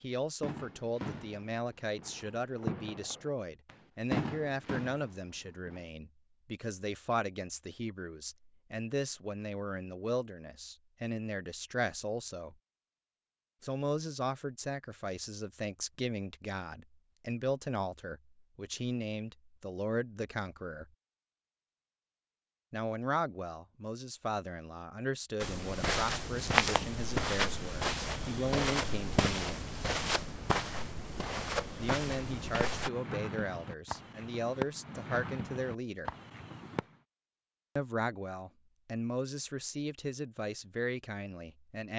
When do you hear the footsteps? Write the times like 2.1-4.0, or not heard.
25.4-32.9.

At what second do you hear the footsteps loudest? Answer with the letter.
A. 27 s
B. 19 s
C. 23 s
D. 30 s
A.